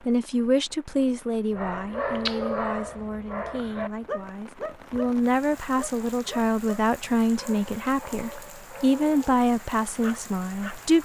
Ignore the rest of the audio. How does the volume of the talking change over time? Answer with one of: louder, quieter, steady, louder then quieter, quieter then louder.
quieter then louder.